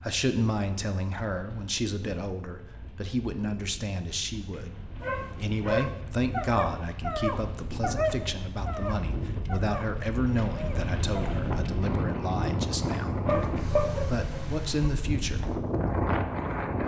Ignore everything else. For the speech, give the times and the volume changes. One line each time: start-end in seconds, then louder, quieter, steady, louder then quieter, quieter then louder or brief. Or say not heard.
0.0-15.4 steady.